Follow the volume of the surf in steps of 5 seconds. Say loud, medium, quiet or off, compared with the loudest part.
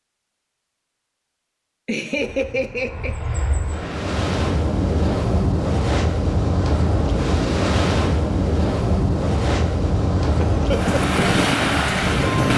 medium, loud, loud.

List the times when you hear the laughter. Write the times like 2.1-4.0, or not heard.
1.9-3.1, 10.3-10.9.